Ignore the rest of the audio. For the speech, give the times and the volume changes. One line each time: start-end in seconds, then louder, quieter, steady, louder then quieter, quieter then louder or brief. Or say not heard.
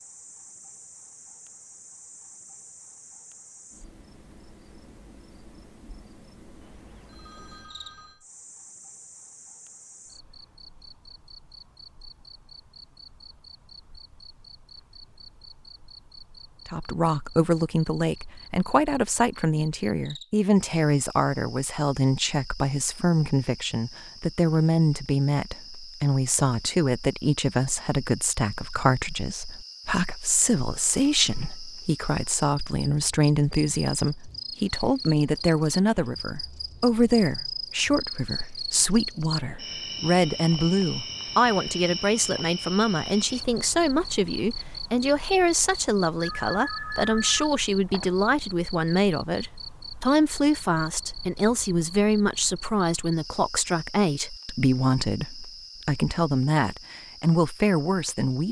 16.6-58.4 steady.